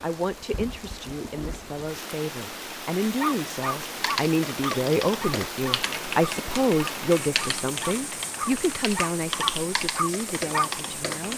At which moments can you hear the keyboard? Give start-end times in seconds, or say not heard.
3.9-11.3.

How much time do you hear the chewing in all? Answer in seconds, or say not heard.
not heard.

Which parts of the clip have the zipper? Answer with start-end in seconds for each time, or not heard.
not heard.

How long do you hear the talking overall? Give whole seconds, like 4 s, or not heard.
11 s.